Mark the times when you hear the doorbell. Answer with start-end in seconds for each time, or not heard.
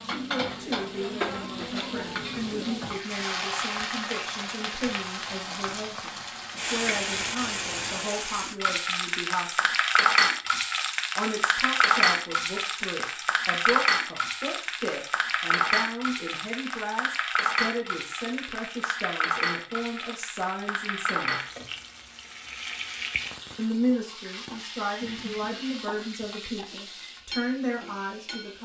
not heard.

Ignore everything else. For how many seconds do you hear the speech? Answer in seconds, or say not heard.
25 s.